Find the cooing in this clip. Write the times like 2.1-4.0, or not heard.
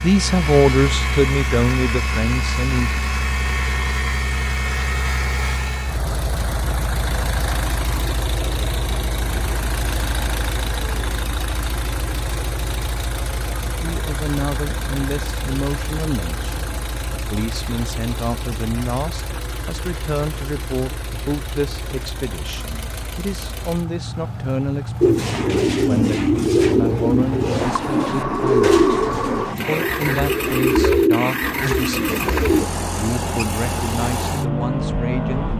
25.0-32.7.